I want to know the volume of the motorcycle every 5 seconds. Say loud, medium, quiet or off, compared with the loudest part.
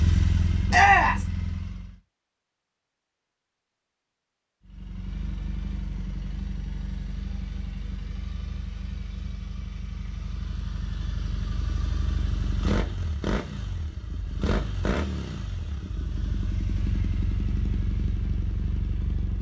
loud, medium, loud, loud.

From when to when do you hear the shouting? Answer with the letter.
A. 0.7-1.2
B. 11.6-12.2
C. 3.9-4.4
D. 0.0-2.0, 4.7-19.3
A.